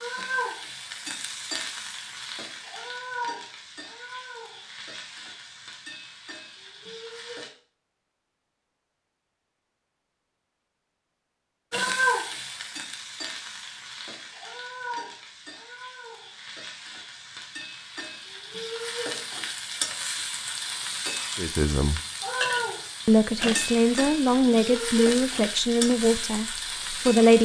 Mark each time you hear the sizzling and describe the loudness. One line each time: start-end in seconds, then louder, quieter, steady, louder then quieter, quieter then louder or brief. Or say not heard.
0.0-7.5 quieter
11.7-27.4 quieter then louder.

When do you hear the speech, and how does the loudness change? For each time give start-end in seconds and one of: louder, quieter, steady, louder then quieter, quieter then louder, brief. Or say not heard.
21.4-22.0 brief
23.1-27.4 quieter.